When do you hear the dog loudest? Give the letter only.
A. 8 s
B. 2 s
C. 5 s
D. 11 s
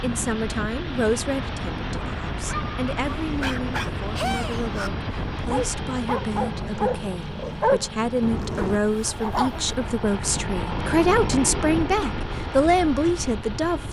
A.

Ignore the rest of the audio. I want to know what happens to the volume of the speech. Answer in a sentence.
The volume of the speech goes up.